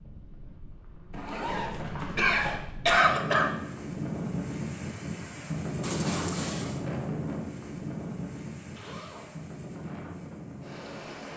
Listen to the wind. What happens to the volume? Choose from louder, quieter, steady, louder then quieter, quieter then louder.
louder then quieter.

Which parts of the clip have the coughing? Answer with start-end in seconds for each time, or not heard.
2.1-3.5, 5.8-6.8.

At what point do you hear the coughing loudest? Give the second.
3 s.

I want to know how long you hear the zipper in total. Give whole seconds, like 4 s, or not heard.
2 s.